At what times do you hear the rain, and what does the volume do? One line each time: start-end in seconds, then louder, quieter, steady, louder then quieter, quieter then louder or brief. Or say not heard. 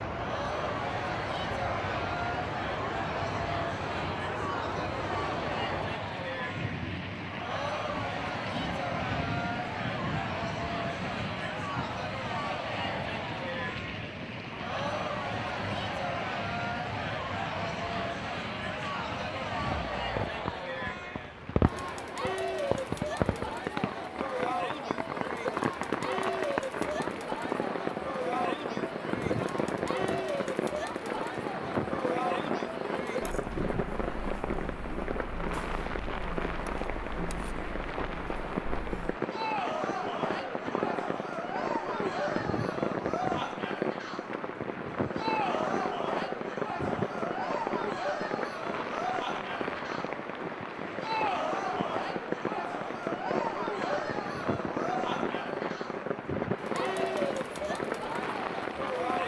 0.0-59.2 steady.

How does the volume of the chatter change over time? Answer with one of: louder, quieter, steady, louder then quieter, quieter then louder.
steady.